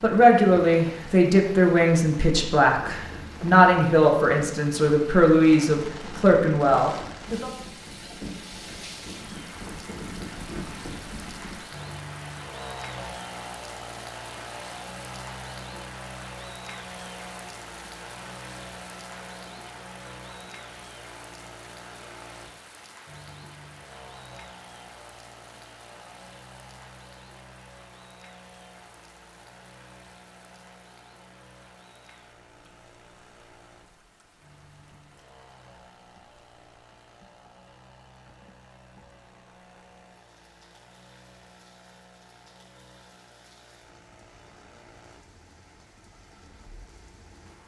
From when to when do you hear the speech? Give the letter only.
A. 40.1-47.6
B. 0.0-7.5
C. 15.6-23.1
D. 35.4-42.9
B.